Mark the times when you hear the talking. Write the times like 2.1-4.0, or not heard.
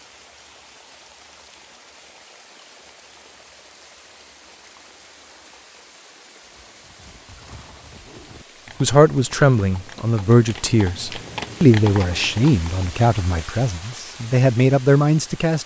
8.8-15.6.